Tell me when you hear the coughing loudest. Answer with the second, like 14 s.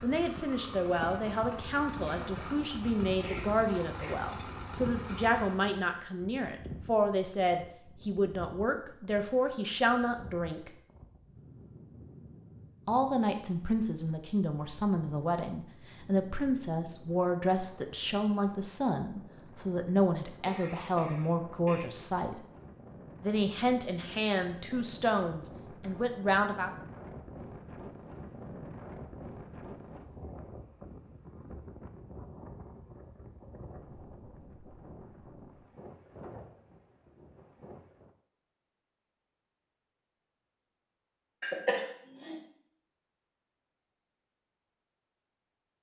42 s.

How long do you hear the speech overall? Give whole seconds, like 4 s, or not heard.
24 s.